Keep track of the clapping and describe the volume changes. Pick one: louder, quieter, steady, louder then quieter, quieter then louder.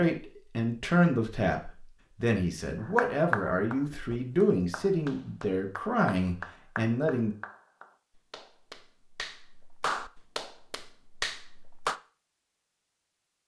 quieter then louder.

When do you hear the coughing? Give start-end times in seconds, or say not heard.
not heard.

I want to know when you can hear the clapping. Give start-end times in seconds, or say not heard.
2.8-12.0.